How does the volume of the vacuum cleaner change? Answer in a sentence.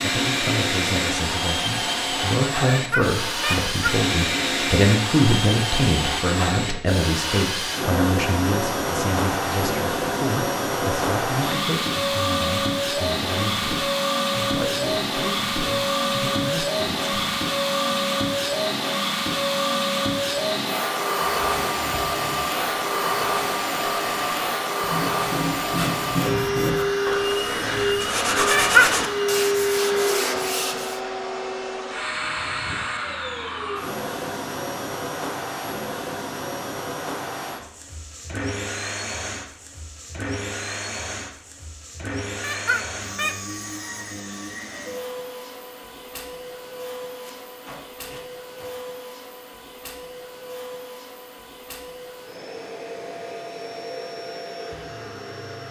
The loudness of the vacuum cleaner goes down.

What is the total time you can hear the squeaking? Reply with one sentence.
You can hear the squeaking for 3 seconds altogether.